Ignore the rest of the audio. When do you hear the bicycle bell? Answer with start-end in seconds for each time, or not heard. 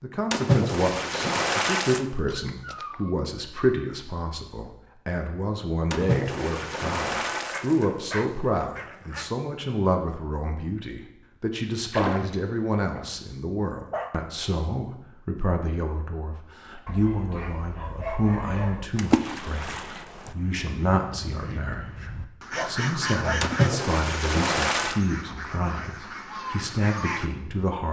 not heard.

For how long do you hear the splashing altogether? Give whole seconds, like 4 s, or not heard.
7 s.